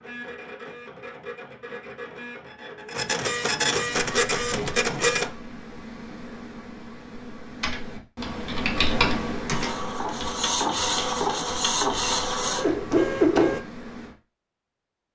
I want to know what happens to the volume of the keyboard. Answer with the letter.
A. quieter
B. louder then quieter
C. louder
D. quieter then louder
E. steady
B.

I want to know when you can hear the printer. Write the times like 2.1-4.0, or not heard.
0.0-5.3, 9.5-13.6.